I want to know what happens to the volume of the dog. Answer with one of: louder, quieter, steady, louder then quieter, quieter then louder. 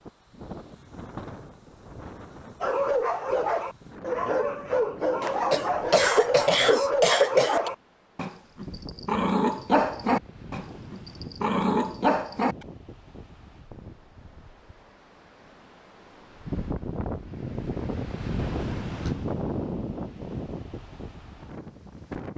steady.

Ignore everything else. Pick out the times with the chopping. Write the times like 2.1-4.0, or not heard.
not heard.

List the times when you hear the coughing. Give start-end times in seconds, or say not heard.
5.5-7.7, 18.4-19.2.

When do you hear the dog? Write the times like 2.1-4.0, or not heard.
2.6-12.7.